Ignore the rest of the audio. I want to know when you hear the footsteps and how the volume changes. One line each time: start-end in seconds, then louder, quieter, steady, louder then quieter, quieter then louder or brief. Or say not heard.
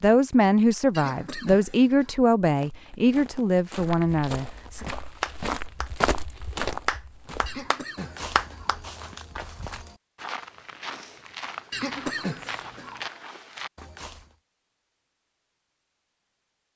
2.5-14.3 louder then quieter.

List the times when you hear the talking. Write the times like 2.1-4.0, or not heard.
0.0-4.8.